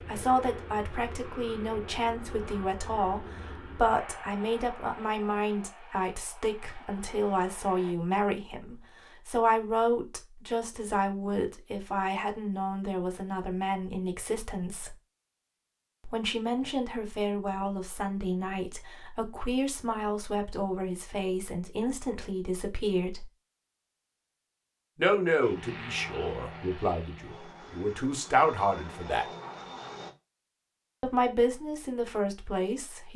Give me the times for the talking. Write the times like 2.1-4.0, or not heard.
0.1-14.9, 16.1-23.2, 24.9-29.2, 31.0-33.1.